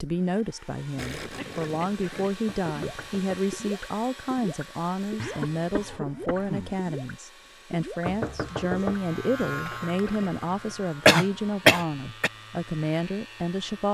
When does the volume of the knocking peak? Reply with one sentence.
The volume of the knocking peaks at 9 seconds.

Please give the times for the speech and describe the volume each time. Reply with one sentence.
You can hear the speech from 0.0 to 13.8 s, at a steady volume.